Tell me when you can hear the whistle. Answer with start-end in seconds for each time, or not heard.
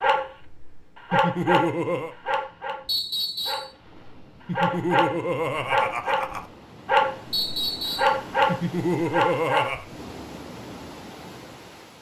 2.9-3.7, 7.3-8.2.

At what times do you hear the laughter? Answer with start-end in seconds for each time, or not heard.
1.1-2.1, 4.5-6.5, 8.4-9.8.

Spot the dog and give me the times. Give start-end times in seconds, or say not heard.
0.0-9.9.